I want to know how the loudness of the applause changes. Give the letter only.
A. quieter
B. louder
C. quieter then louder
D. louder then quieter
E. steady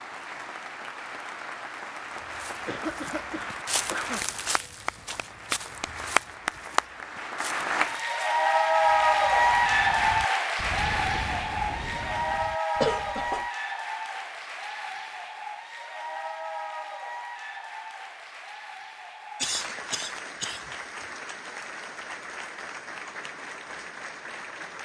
D.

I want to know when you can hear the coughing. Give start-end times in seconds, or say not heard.
2.6-4.2, 12.8-13.4, 19.4-20.7.